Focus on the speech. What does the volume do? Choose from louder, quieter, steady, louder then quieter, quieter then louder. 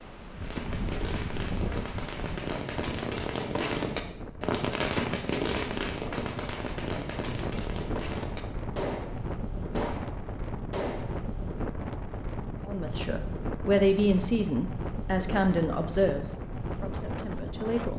quieter.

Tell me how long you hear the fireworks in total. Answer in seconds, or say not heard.
11 s.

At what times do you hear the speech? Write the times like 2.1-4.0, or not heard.
12.7-17.9.